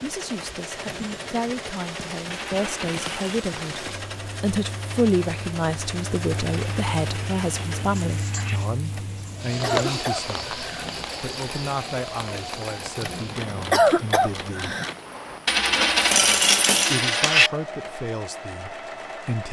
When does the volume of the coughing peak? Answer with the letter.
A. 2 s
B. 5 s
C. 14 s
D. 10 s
C.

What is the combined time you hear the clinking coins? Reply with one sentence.
You can hear the clinking coins for 5 seconds altogether.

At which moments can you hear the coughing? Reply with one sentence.
You can hear the coughing from 0.8 to 1.4 s, from 8.9 to 11.1 s and from 13.0 to 14.9 s.